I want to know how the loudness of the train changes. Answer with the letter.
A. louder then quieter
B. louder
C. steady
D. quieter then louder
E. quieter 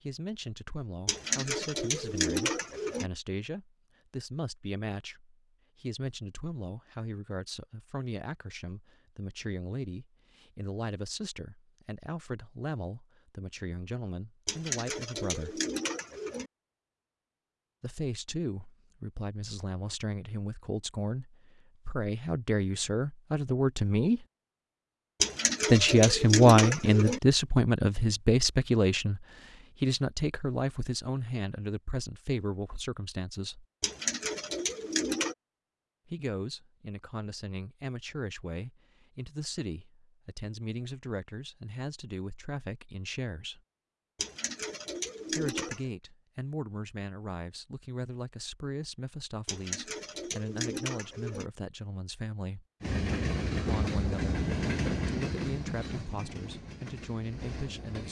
E.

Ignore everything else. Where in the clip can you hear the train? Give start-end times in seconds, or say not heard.
52.8-58.0.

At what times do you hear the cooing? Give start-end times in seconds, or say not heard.
1.1-3.1, 14.4-16.5, 25.2-27.2, 33.8-35.4, 44.1-45.9, 49.5-51.5.